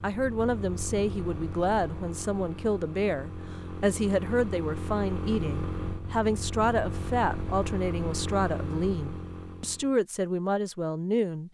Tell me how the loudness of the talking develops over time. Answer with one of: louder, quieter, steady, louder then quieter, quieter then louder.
steady.